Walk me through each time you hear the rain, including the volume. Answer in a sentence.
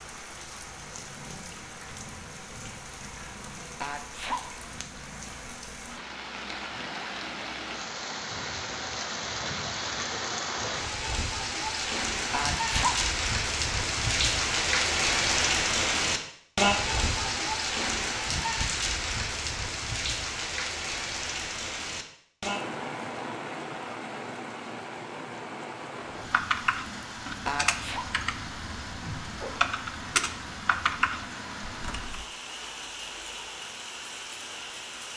The rain can be heard from 0.0 to 35.1 s, getting louder then quieter.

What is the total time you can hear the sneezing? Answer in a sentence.
You can hear the sneezing for 2 seconds altogether.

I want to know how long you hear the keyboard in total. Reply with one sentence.
The keyboard can be heard for 6 seconds in total.